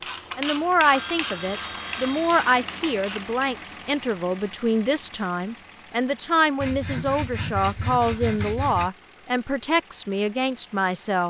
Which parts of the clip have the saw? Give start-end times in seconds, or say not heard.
0.8-2.6, 6.6-8.9.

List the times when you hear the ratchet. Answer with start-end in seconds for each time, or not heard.
0.0-3.5.